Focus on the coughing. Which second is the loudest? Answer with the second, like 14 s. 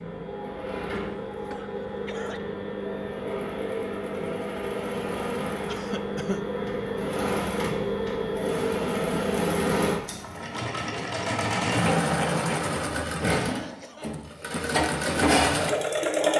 6 s.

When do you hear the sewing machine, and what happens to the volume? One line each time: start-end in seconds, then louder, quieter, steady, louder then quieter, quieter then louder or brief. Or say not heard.
0.0-16.3 louder.